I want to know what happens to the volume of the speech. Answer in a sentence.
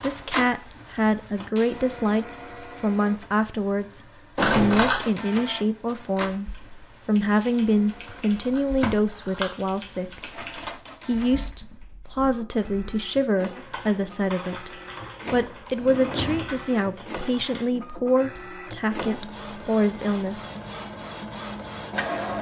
The loudness of the speech stays about the same.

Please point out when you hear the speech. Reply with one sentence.
You can hear the speech from 0.0 to 10.2 s, from 11.1 to 14.7 s and from 15.3 to 20.5 s.